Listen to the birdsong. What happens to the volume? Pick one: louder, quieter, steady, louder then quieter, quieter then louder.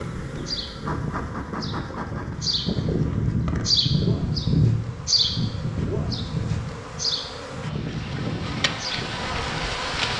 louder then quieter.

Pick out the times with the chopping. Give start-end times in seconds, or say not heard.
not heard.